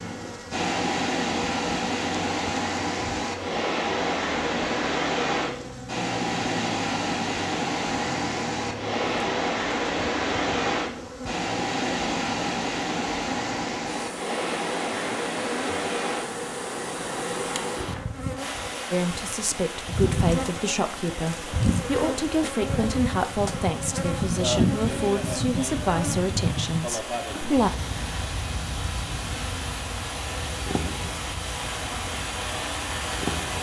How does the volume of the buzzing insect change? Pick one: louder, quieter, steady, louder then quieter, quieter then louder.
louder then quieter.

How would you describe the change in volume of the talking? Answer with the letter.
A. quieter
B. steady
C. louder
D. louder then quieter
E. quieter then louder
B.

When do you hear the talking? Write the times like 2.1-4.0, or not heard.
18.9-27.7.